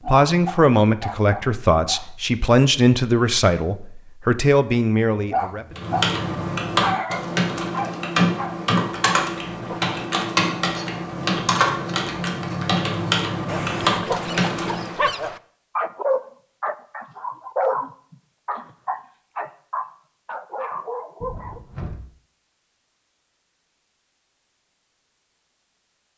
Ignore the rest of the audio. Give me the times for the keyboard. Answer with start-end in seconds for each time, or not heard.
5.8-15.0.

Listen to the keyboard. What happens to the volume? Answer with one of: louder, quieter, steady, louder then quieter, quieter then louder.
steady.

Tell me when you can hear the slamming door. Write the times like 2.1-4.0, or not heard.
21.2-22.1.